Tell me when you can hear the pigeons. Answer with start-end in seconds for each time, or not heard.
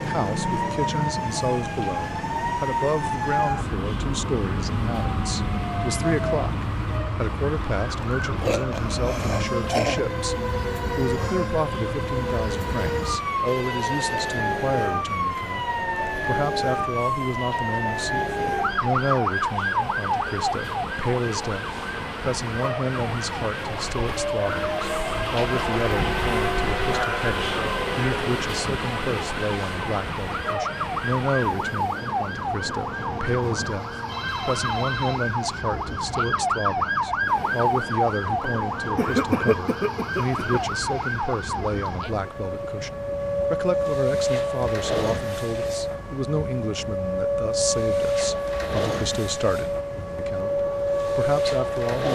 not heard.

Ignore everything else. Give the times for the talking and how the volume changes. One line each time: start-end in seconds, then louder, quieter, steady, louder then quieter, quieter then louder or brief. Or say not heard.
0.0-52.1 steady.